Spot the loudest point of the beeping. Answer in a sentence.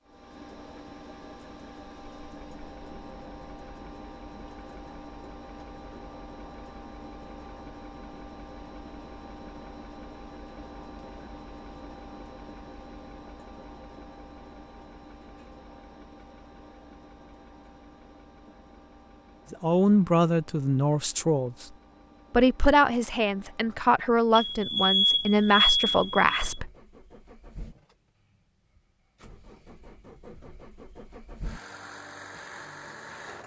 The loudest moment of the beeping is at 26 seconds.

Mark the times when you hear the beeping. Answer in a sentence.
The beeping can be heard from 24.4 to 26.6 s.